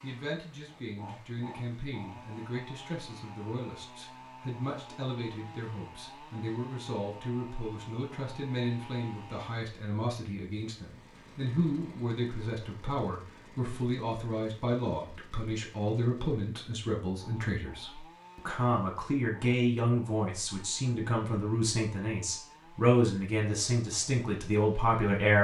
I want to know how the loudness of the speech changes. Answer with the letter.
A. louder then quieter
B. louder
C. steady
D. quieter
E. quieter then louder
B.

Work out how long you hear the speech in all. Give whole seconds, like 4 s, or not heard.
25 s.